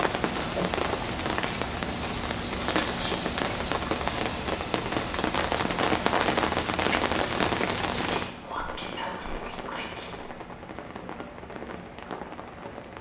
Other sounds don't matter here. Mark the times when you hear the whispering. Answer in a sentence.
The whispering can be heard from 1.9 to 4.5 s and from 8.1 to 10.3 s.